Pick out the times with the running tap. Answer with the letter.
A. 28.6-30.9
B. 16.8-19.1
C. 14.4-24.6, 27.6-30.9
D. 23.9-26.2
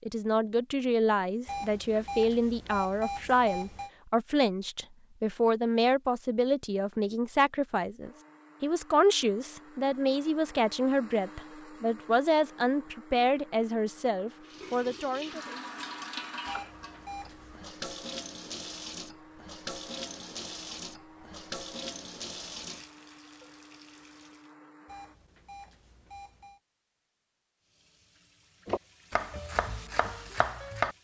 C.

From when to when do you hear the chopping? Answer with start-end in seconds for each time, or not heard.
28.6-30.9.